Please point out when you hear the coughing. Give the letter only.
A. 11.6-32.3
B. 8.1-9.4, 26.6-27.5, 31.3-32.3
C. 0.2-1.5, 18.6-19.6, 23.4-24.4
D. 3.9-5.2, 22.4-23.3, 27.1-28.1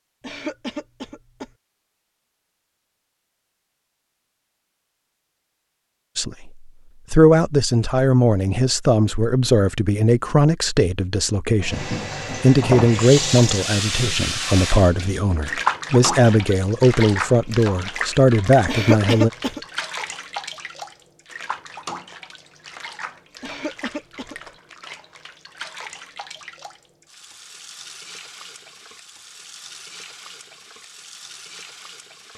C.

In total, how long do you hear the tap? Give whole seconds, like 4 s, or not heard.
21 s.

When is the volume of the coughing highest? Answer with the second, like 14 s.
19 s.